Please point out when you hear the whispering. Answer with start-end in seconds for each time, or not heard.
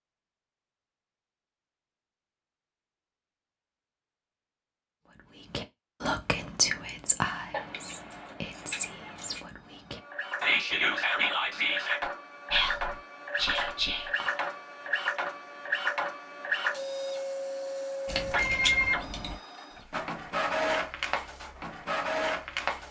5.5-14.4.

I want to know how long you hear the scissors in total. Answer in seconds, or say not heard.
3 s.